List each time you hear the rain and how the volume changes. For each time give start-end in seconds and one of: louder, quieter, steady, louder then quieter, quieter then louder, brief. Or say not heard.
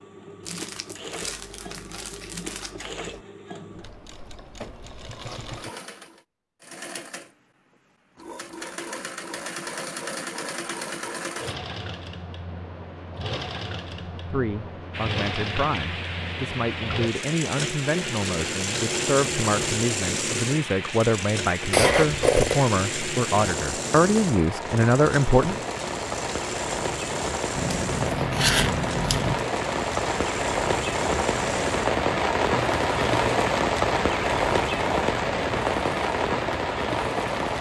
14.9-37.5 louder.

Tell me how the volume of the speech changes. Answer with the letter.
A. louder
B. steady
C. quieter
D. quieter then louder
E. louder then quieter
A.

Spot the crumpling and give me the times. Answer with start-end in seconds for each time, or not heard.
0.4-2.7.